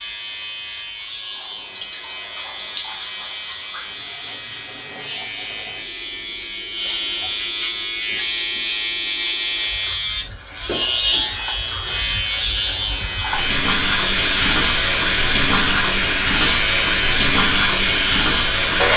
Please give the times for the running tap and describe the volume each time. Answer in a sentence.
The running tap can be heard from 0.0 to 18.9 s, getting quieter then louder.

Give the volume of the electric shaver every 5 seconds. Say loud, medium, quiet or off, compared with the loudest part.
medium, loud, loud, loud.